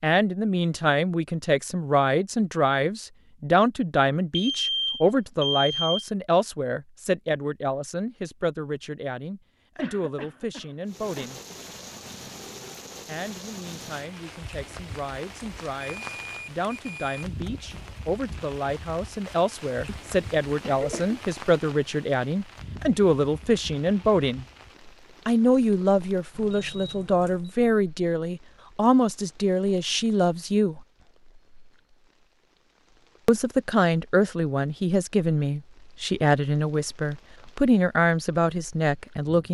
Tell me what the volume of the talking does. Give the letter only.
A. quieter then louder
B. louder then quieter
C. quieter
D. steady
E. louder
A.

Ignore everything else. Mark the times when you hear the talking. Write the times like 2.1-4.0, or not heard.
0.0-11.4, 13.1-24.4, 25.2-30.8, 33.2-39.4.